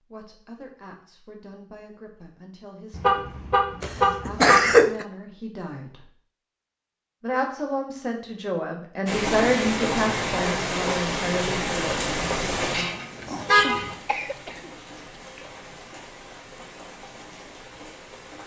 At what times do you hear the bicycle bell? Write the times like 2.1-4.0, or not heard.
not heard.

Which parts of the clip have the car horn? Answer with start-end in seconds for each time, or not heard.
2.9-4.8, 12.6-13.9.